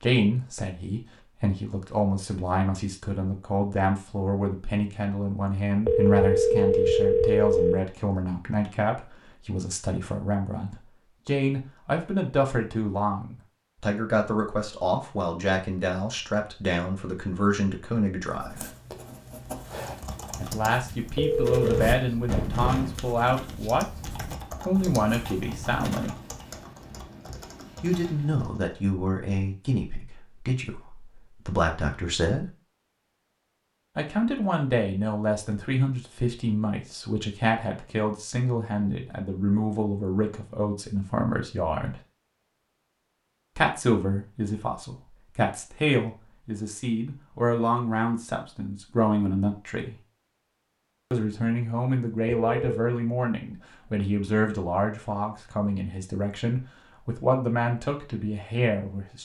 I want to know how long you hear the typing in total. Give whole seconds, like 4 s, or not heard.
9 s.